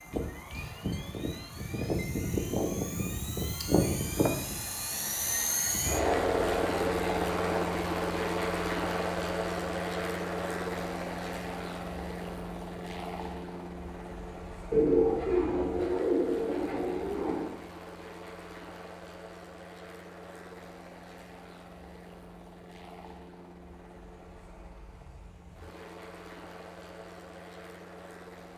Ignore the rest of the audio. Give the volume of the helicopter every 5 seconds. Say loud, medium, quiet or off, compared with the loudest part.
loud, loud, medium, quiet, quiet, quiet.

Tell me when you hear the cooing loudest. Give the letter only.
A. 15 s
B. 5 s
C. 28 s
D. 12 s
A.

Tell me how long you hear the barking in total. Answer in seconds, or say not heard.
not heard.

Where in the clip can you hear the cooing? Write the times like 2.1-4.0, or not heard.
14.7-17.6.